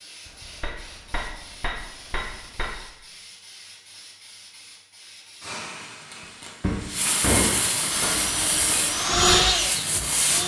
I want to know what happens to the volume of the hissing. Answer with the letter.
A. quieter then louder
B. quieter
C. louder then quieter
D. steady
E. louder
E.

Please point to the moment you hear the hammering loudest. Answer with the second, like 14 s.
7 s.